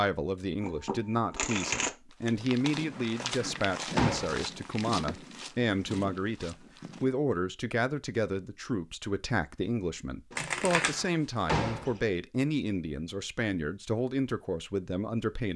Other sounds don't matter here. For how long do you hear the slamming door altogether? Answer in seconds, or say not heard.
3 s.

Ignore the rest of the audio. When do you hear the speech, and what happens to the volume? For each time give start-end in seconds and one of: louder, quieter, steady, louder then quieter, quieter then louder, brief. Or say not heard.
0.0-15.5 steady.